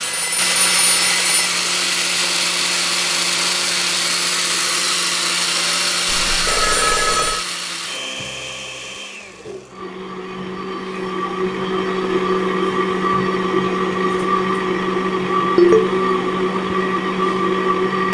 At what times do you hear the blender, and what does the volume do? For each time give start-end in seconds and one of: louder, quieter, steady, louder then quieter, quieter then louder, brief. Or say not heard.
0.0-18.0 quieter then louder.